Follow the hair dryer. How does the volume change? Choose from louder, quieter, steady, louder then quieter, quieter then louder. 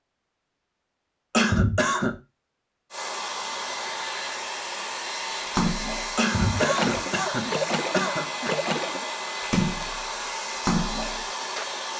steady.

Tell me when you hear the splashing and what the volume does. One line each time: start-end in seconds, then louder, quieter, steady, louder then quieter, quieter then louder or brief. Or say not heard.
5.5-11.7 steady.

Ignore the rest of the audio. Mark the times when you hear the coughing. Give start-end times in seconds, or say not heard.
1.3-2.1, 6.2-8.6.